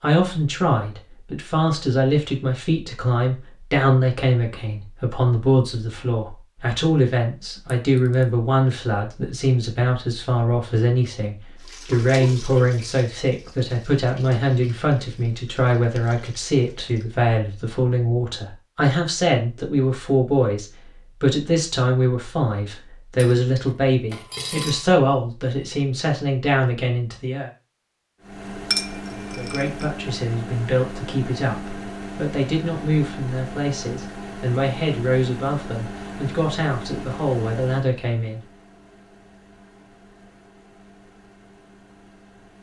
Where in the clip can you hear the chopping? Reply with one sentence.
The chopping can't be heard in this clip.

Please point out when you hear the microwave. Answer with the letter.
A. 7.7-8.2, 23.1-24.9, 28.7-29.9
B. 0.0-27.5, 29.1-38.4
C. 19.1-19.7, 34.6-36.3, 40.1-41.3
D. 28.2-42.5
D.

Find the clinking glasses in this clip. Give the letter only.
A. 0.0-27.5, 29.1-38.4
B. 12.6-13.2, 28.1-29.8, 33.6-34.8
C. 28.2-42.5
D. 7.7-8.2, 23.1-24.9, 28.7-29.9
D.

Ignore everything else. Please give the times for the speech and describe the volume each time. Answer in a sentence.
The speech can be heard from 0.0 to 27.5 s, at a steady volume; and from 29.1 to 38.4 s, at a steady volume.